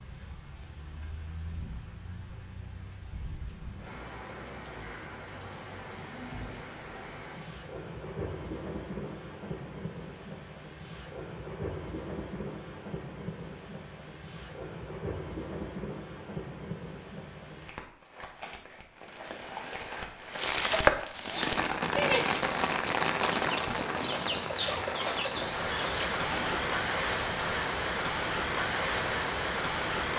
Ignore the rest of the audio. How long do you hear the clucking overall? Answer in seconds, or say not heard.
5 s.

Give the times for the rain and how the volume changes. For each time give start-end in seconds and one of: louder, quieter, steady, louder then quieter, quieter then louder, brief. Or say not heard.
0.0-30.1 louder.